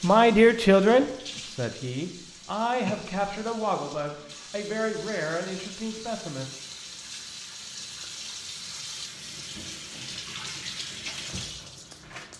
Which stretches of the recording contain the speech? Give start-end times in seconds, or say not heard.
0.0-6.5.